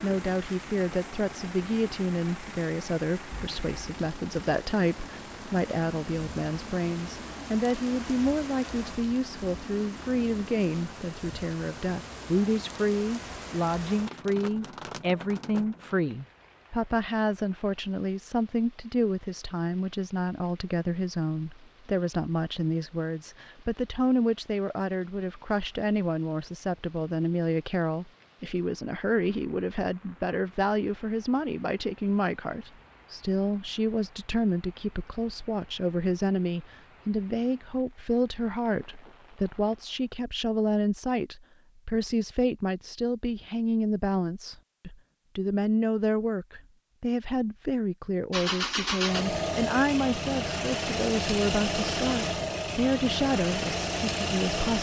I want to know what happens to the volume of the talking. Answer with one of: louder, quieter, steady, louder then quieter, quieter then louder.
steady.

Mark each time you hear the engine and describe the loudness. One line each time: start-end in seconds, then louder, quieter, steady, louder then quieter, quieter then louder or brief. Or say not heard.
0.0-10.9 steady
48.3-54.7 steady.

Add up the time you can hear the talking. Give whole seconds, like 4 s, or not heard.
55 s.